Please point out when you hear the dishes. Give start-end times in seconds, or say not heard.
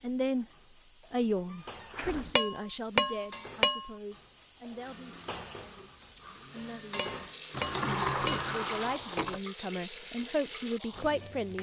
2.4-3.9, 7.0-8.5.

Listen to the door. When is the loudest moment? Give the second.
8 s.